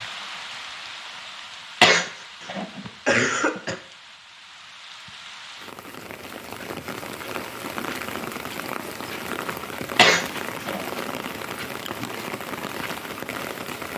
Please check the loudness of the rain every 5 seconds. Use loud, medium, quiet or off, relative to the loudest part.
medium, loud, loud.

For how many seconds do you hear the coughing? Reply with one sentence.
The coughing can be heard for 3 seconds in total.